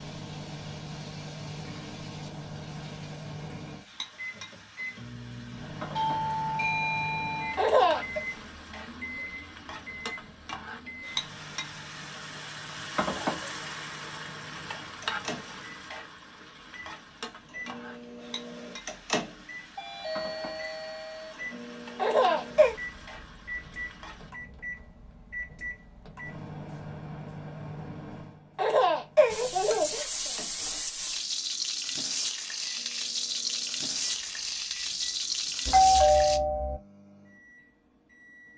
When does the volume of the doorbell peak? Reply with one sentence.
The volume of the doorbell peaks at 36 seconds.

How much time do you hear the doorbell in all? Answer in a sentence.
You can hear the doorbell for 4 seconds altogether.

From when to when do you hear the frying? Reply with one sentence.
You can hear the frying from 0.0 to 24.3 s and from 29.2 to 36.4 s.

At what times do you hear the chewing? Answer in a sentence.
The chewing can't be heard in this clip.